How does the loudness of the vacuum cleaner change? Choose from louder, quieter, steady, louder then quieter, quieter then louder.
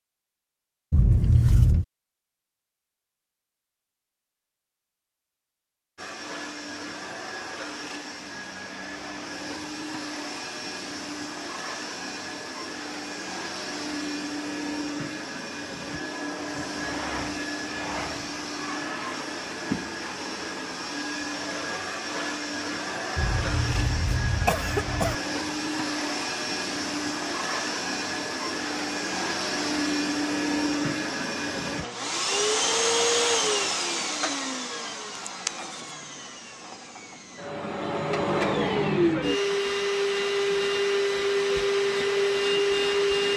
louder.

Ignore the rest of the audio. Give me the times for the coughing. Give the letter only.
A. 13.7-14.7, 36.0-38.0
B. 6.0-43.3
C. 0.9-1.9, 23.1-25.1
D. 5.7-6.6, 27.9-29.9
C.